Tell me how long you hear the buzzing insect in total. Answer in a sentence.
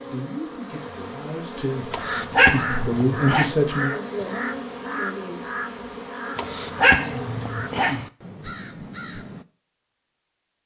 You can hear the buzzing insect for 8 seconds altogether.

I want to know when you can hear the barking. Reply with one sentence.
You can hear the barking from 1.9 to 3.5 s and from 6.3 to 8.1 s.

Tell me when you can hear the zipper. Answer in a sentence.
The zipper can't be heard in this clip.